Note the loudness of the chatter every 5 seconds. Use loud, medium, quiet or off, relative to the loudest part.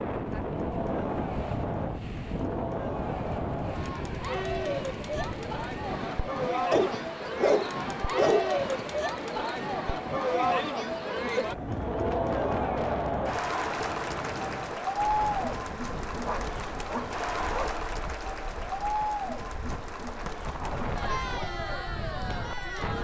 medium, loud, loud, loud, medium.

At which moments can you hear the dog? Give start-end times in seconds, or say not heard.
6.7-8.6, 16.2-17.8.